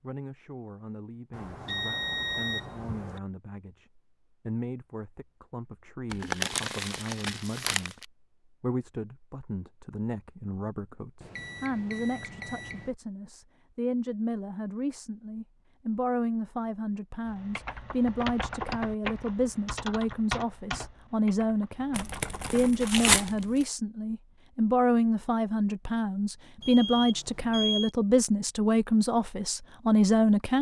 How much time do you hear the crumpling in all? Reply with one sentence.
The crumpling can be heard for 4 seconds in total.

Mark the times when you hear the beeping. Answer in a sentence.
You can hear the beeping from 1.3 to 3.2 s, from 11.2 to 12.9 s and from 26.6 to 27.9 s.